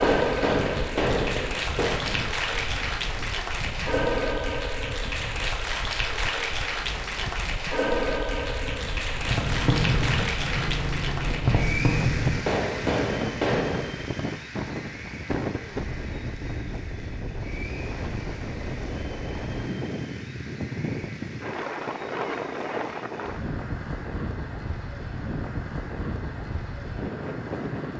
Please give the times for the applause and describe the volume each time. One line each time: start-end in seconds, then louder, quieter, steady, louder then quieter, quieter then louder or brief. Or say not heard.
0.0-27.9 quieter.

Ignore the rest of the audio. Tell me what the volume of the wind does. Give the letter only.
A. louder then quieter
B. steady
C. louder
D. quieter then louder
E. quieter
C.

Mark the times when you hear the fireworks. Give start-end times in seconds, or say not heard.
0.0-2.1, 9.1-13.9.